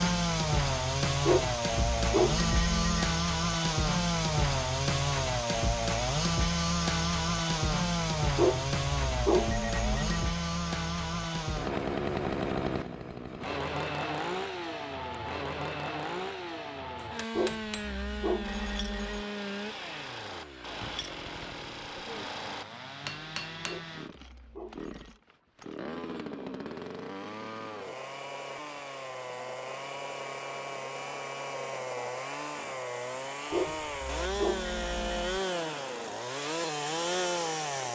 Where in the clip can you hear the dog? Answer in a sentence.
The dog can be heard from 1.2 to 3.1 s, from 8.3 to 10.2 s, from 17.3 to 19.2 s, from 23.6 to 25.2 s and from 33.5 to 35.4 s.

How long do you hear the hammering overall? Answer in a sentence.
You can hear the hammering for 7 seconds altogether.